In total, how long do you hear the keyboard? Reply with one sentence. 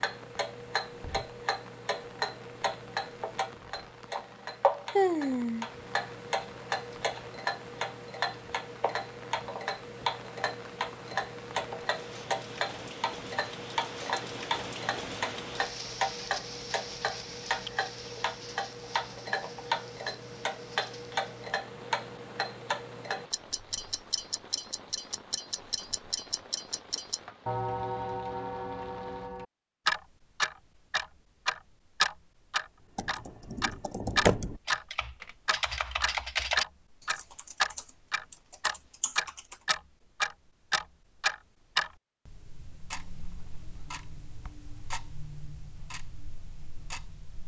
You can hear the keyboard for 7 seconds altogether.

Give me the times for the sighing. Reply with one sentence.
The sighing can be heard from 4.9 to 5.7 s.